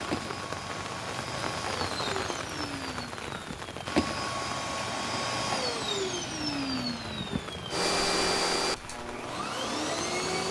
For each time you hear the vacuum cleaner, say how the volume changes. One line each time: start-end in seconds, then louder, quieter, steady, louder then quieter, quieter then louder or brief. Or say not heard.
0.0-10.4 louder.